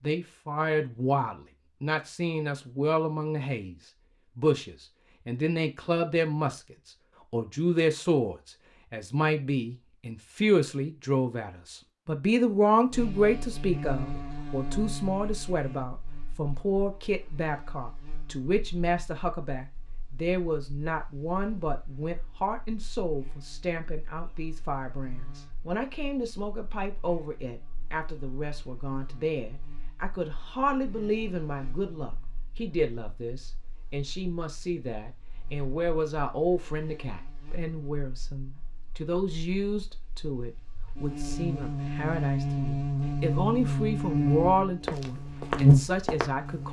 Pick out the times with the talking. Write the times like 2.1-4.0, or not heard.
0.0-46.6.